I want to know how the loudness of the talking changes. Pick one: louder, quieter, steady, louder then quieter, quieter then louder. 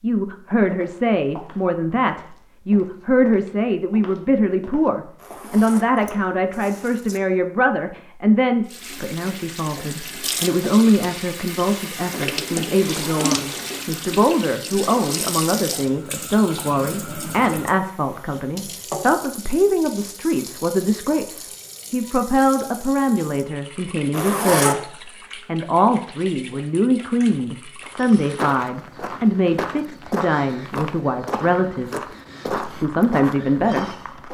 steady.